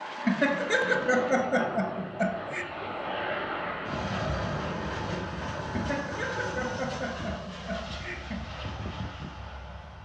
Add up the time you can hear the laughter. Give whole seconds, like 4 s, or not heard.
5 s.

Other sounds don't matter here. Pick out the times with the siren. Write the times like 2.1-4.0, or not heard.
not heard.